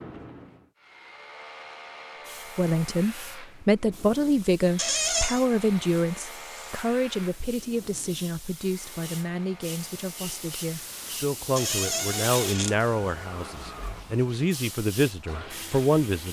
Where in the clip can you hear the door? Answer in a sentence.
The door can be heard from 4.8 to 5.5 s and from 11.6 to 12.8 s.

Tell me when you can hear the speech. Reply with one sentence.
You can hear the speech from 2.5 to 16.2 s.